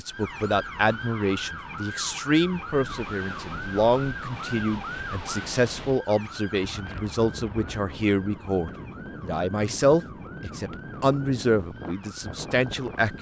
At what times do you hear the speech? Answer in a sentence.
The speech can be heard from 0.0 to 13.1 s.